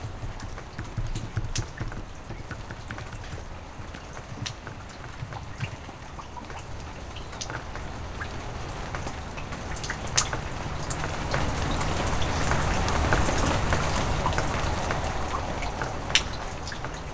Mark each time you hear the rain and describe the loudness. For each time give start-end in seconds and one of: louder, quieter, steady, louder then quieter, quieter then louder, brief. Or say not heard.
0.0-17.0 louder.